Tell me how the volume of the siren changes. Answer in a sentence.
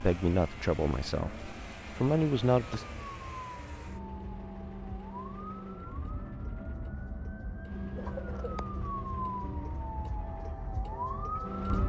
The volume of the siren goes up.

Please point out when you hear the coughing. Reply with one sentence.
The coughing can be heard from 8.0 to 8.7 s.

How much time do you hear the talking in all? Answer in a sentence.
You can hear the talking for 3 seconds altogether.